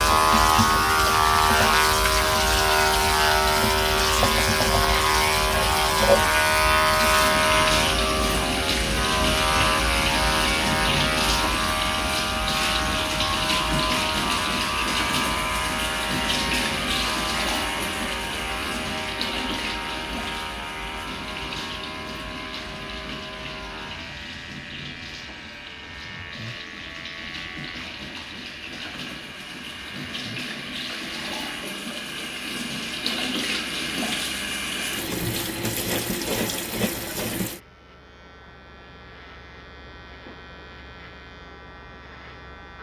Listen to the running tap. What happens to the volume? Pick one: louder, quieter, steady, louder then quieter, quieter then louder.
quieter then louder.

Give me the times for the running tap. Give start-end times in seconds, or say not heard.
0.0-37.6.